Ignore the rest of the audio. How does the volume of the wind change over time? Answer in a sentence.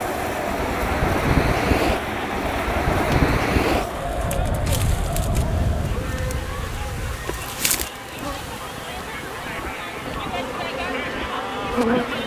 The volume of the wind goes down.